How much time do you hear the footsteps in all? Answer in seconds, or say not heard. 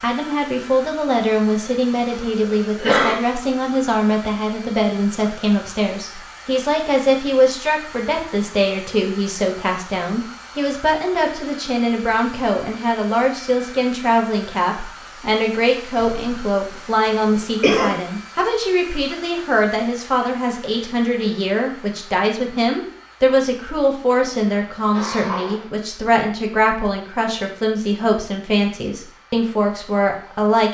not heard.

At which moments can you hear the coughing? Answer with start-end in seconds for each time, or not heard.
2.0-3.2, 15.9-17.9, 24.1-25.6.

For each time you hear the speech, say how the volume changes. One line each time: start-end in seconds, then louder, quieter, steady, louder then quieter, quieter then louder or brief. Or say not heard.
0.0-30.6 steady.